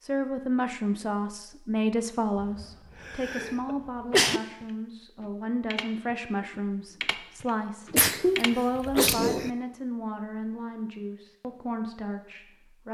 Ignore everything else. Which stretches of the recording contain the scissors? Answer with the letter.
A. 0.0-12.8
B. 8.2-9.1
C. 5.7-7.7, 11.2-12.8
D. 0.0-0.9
B.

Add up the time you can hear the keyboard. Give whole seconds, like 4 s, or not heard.
5 s.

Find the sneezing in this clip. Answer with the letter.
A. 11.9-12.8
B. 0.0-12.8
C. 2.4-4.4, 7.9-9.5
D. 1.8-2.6
C.